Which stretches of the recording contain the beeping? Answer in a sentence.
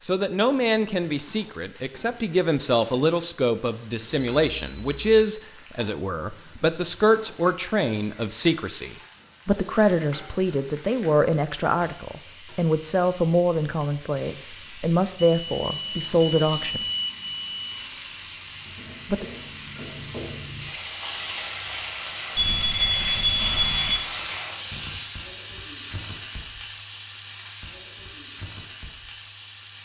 The beeping can be heard from 4.3 to 5.2 s, from 15.2 to 17.9 s and from 22.4 to 24.1 s.